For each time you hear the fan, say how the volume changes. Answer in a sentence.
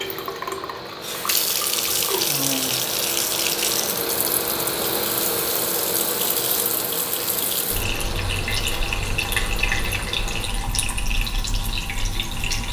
You can hear the fan from 0.0 to 10.5 s, getting louder then quieter.